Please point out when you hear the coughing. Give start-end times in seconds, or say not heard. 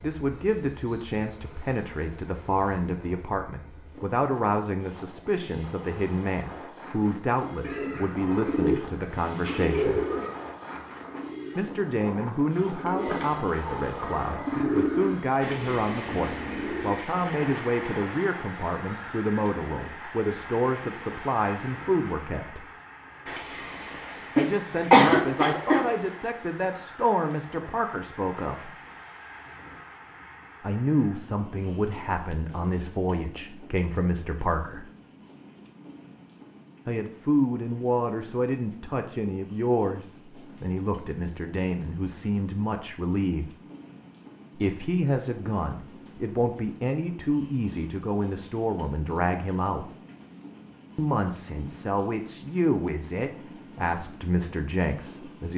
24.4-25.9.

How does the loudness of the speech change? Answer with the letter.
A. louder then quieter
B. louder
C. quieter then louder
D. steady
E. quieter
D.